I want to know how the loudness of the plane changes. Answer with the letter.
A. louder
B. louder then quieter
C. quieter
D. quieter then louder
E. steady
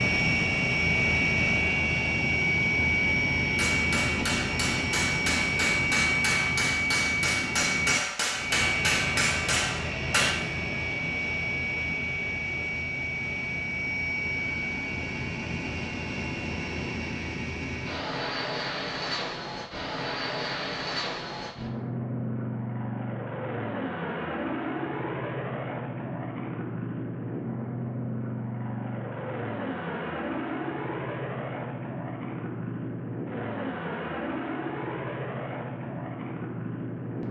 C.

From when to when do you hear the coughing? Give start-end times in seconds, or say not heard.
not heard.